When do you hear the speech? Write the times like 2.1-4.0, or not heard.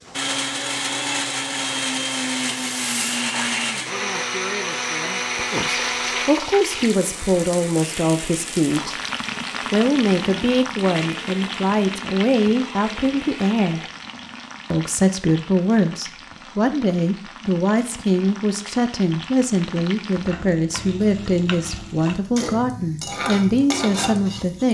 5.5-9.0, 9.7-13.9, 14.7-24.6.